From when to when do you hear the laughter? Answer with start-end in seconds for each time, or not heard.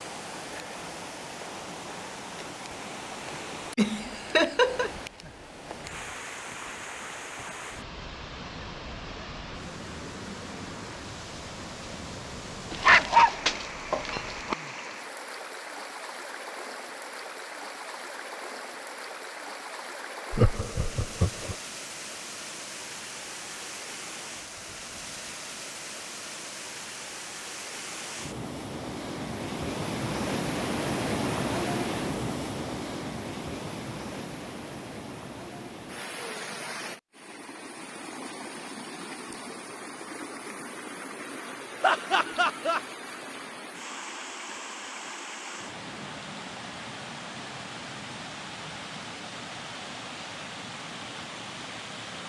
3.8-4.9, 20.3-21.6, 41.8-42.8.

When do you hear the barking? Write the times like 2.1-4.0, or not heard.
12.7-14.6.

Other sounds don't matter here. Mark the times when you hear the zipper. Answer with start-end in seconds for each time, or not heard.
not heard.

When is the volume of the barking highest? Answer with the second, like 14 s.
13 s.